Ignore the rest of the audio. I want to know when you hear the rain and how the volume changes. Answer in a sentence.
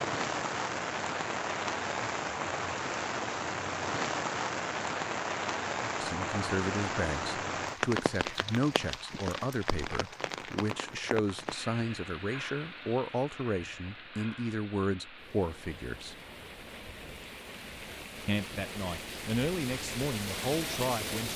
You can hear the rain from 0.0 to 21.3 s, getting quieter then louder.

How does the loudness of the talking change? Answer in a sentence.
The volume of the talking stays about the same.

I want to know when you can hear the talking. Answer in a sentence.
You can hear the talking from 6.0 to 16.1 s and from 18.2 to 21.3 s.